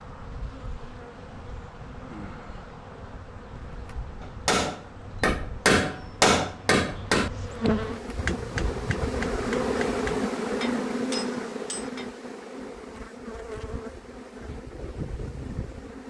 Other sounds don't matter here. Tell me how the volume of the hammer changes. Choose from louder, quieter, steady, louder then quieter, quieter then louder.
quieter.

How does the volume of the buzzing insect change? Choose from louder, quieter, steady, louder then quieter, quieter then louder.
louder then quieter.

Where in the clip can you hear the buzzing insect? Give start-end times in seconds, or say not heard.
0.0-16.0.